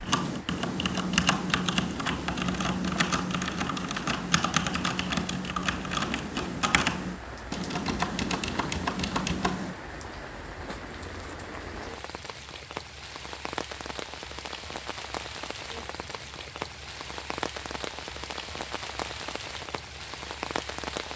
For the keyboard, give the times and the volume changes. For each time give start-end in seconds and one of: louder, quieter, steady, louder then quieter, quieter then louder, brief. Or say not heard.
0.0-9.8 steady.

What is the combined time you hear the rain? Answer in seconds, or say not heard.
21 s.